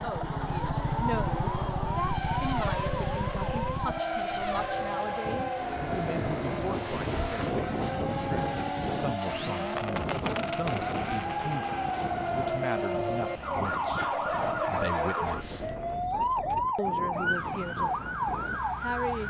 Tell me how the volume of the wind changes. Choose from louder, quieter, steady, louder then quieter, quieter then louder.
quieter.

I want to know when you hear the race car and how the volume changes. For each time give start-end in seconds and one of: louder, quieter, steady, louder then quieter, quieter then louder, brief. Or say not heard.
0.0-16.1 quieter.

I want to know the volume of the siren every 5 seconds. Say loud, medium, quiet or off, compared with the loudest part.
loud, medium, loud, loud.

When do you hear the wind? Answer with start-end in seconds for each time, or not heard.
5.2-19.2.